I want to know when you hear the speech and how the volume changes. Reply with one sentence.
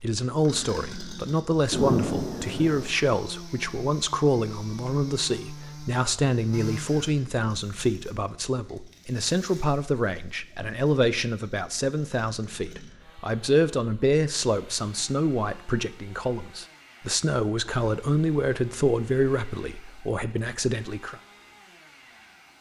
The speech can be heard from 0.0 to 21.1 s, at a steady volume.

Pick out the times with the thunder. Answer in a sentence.
You can hear the thunder from 1.7 to 2.9 s.